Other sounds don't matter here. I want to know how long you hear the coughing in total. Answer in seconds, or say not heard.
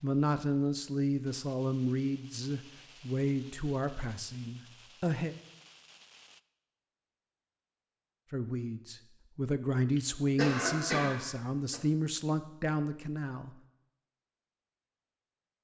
2 s.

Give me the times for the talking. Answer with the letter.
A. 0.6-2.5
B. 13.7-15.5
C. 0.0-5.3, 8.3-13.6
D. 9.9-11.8
C.